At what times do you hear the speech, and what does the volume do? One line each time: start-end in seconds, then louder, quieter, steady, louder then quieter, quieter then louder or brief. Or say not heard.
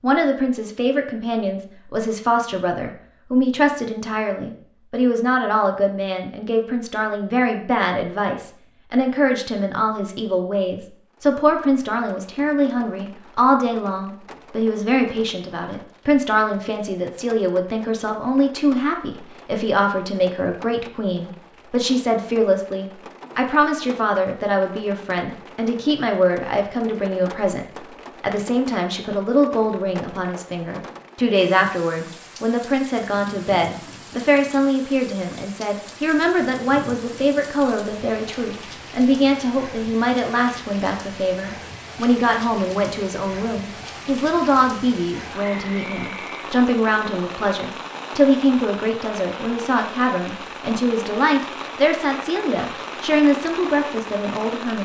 0.0-54.8 steady.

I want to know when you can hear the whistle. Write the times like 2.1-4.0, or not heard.
45.4-46.5.